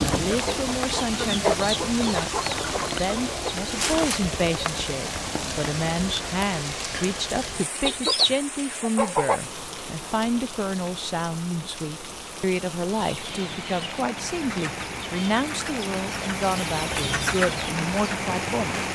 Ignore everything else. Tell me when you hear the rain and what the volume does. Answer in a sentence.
You can hear the rain from 0.0 to 18.9 s, getting quieter then louder.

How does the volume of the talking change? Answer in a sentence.
The loudness of the talking stays about the same.